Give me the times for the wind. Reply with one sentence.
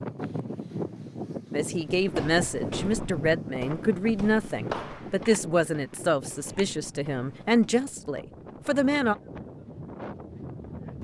The wind can be heard from 0.0 to 10.9 s.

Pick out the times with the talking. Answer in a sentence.
The talking can be heard from 1.5 to 9.2 s.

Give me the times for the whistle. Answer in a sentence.
The whistle can't be heard in this clip.